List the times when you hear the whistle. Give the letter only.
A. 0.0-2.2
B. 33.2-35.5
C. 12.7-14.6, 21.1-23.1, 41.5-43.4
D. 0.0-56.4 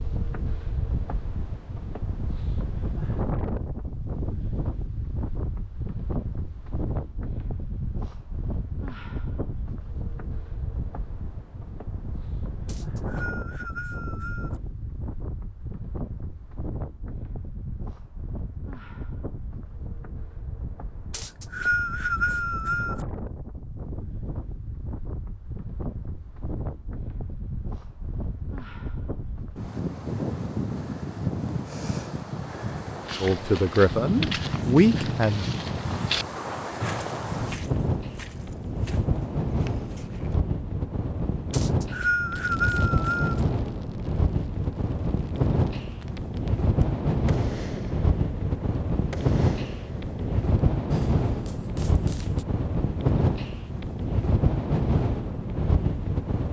C.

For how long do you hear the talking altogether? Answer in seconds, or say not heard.
2 s.